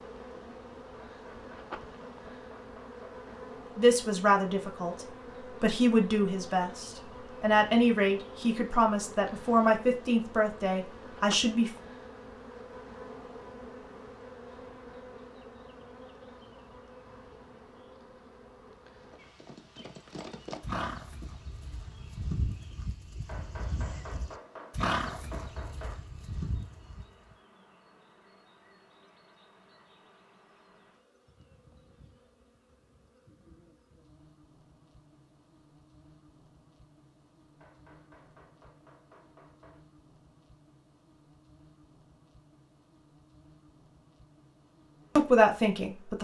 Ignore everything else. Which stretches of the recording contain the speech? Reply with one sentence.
The speech can be heard from 3.8 to 11.7 s and from 45.1 to 46.1 s.